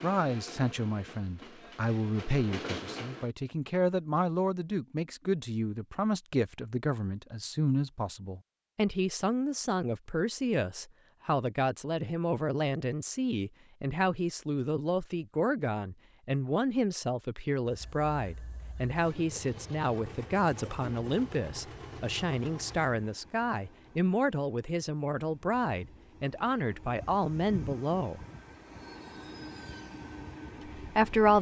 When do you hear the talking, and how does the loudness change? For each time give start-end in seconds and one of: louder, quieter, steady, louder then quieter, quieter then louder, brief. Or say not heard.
0.0-28.2 steady
30.8-31.3 brief.